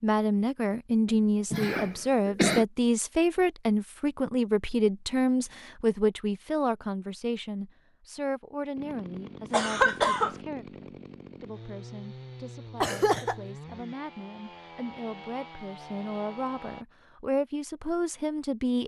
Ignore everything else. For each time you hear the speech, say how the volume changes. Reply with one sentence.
The speech can be heard from 0.0 to 18.8 s, getting quieter then louder.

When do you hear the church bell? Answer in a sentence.
You can't hear the church bell here.